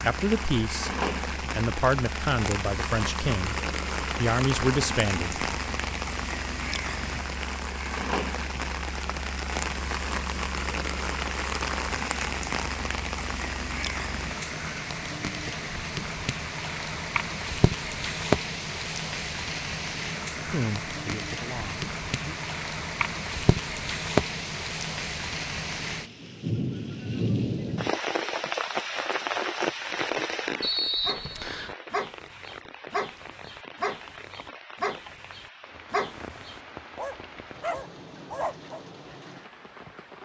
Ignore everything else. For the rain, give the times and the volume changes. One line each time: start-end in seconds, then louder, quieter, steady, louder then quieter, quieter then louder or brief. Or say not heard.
0.0-40.2 quieter.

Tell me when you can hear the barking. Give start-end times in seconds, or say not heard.
31.1-38.8.